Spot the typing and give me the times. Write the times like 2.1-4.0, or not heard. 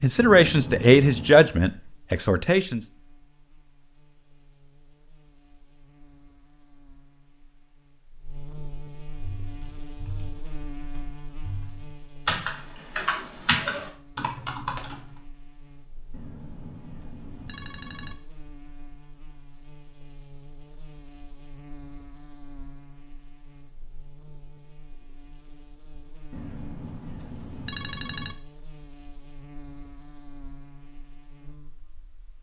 9.2-15.2.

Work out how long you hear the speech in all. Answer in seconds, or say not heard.
3 s.